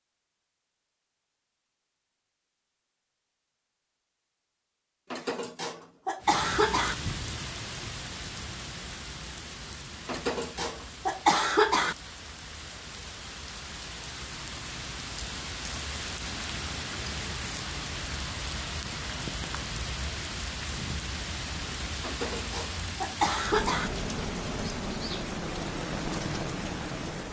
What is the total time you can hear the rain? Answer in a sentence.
You can hear the rain for 21 seconds altogether.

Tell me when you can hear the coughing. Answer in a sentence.
The coughing can be heard from 5.1 to 7.0 s, from 10.1 to 11.9 s and from 22.0 to 23.9 s.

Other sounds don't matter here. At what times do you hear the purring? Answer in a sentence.
The purring can't be heard in this clip.